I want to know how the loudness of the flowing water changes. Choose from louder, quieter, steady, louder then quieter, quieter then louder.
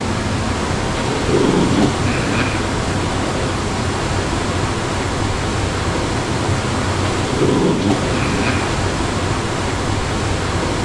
steady.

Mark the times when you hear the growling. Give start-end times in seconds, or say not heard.
1.1-2.7, 7.2-8.8.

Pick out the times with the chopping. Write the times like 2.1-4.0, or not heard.
not heard.